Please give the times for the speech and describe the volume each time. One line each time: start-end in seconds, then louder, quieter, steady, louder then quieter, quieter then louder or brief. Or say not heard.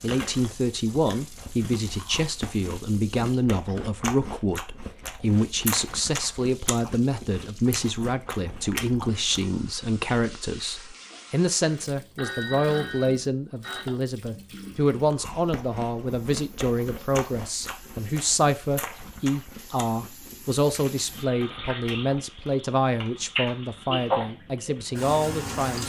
0.0-25.8 steady.